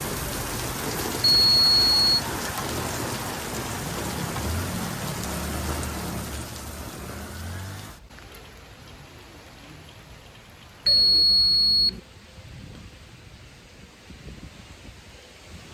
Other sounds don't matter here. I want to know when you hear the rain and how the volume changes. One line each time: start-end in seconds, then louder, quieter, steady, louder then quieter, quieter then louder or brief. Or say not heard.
0.0-15.6 quieter.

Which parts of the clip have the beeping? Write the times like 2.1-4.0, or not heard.
1.2-2.2, 10.8-12.0.